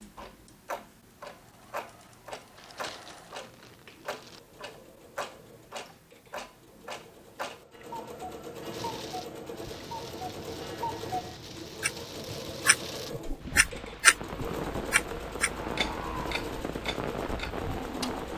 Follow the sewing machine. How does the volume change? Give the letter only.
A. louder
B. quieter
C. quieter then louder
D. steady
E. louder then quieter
A.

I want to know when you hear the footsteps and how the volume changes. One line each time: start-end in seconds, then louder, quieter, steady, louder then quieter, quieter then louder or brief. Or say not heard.
not heard.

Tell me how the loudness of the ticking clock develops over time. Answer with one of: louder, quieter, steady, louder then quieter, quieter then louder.
louder.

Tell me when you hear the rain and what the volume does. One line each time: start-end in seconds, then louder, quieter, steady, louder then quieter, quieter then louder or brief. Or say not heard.
8.7-18.3 louder.